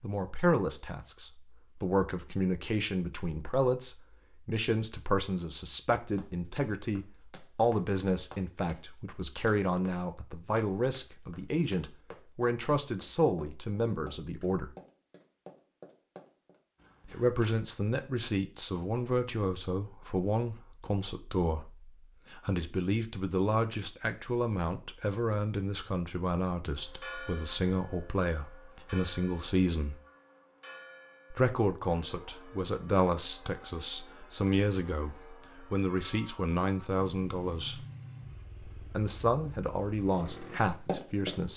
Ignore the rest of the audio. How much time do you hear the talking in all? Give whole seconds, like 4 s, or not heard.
37 s.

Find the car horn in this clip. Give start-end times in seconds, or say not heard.
not heard.